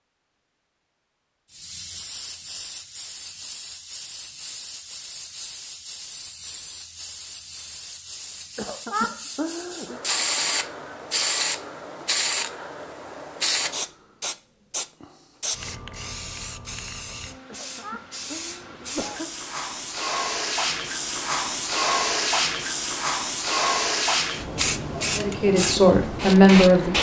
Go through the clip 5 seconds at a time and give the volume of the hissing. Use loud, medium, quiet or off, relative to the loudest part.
quiet, quiet, loud, medium, loud, loud.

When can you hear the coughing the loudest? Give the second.
9 s.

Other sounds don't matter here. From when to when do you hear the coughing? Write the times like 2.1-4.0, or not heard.
8.6-10.0, 17.4-19.3.